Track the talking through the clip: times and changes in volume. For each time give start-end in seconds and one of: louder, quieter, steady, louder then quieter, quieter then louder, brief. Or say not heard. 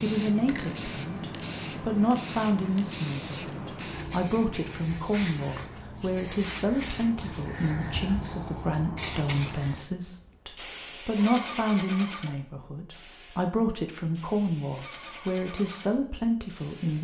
0.0-16.9 steady.